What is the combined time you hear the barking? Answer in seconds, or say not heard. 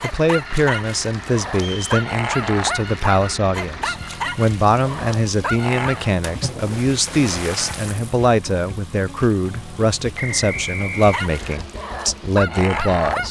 8 s.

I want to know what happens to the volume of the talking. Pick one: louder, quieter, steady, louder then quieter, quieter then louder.
steady.